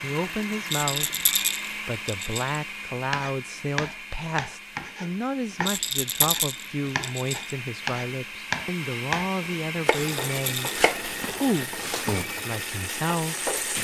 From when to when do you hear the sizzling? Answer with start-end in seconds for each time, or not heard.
10.0-13.8.